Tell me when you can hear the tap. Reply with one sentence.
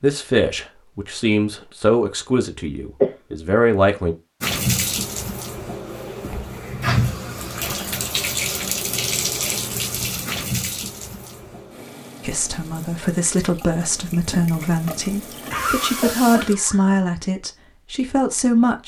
You can hear the tap from 4.4 to 16.6 s.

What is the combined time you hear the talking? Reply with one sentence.
You can hear the talking for 11 seconds altogether.